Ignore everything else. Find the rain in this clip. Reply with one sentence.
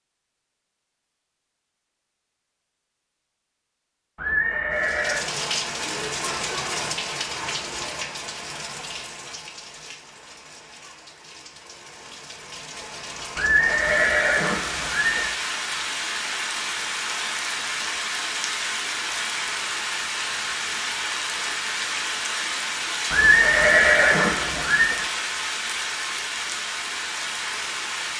You can hear the rain from 4.8 to 28.1 s.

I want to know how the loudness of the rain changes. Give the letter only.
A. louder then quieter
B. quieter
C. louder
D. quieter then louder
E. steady
D.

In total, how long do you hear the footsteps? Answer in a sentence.
You can't hear the footsteps here.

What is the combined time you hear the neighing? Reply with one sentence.
The neighing can be heard for 5 seconds in total.